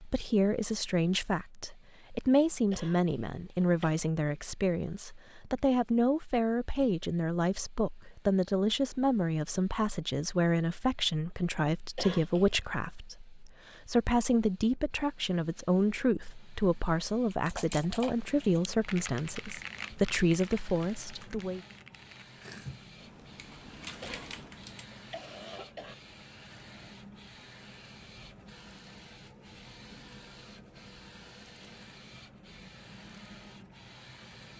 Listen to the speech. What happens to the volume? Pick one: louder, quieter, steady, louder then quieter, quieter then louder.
steady.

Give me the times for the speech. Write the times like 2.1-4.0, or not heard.
0.0-21.6.